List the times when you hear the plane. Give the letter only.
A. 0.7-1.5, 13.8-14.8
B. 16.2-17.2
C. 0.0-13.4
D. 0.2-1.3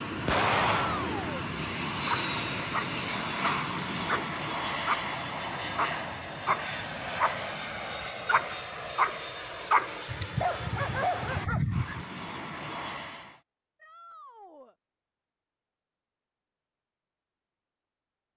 C.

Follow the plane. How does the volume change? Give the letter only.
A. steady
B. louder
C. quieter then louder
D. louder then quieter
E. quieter
E.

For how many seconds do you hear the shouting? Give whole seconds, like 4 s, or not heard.
2 s.